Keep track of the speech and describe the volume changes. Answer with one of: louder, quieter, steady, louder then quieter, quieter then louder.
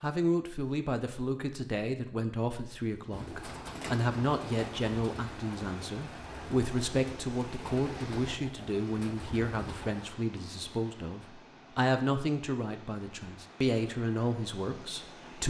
steady.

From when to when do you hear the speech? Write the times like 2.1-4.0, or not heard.
0.0-15.4.